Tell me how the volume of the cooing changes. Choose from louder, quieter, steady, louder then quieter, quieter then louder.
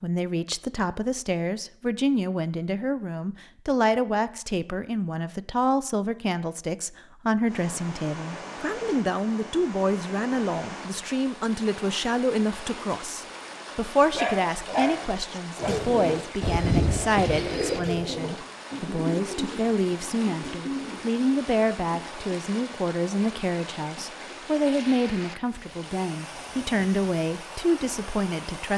quieter.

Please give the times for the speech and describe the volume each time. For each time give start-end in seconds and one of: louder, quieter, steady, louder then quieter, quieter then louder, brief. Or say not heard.
0.0-28.7 steady.